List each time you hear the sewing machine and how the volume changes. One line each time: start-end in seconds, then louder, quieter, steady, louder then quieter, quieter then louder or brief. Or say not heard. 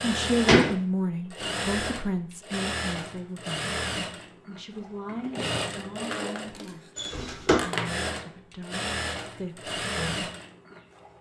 0.0-11.1 steady.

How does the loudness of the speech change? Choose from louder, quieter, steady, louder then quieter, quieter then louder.
quieter.